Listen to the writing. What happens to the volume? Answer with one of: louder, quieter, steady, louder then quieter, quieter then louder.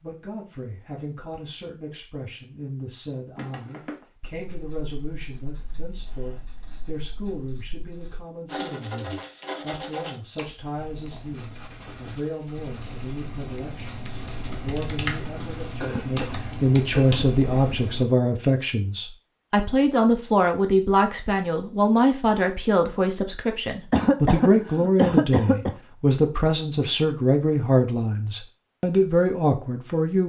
louder then quieter.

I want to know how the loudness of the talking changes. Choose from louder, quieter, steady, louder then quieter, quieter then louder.
louder.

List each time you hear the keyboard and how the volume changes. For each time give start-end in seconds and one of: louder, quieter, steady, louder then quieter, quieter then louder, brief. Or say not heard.
10.8-18.1 louder.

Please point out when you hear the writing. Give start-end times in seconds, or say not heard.
4.2-15.9.